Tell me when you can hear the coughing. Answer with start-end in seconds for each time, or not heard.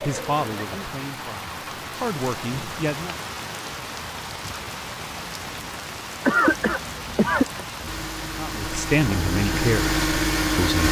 0.0-0.9, 6.2-7.7.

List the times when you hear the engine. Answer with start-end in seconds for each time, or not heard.
7.8-10.8.